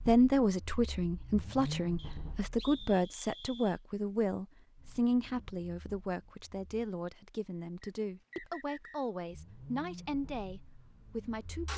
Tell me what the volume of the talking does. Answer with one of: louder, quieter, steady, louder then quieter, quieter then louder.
quieter.